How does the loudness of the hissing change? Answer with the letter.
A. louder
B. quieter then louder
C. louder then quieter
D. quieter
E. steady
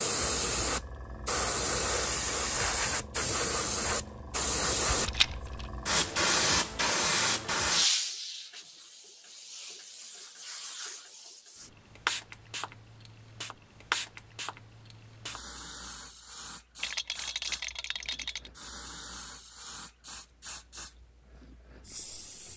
D.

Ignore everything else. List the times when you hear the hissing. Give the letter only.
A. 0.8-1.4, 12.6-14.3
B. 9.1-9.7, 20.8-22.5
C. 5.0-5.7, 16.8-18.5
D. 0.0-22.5
D.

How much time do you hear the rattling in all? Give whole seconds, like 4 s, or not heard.
2 s.